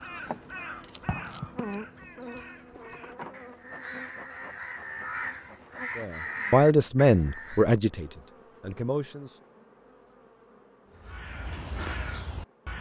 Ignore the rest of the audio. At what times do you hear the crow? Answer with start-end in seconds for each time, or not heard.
0.0-7.7, 10.9-12.7.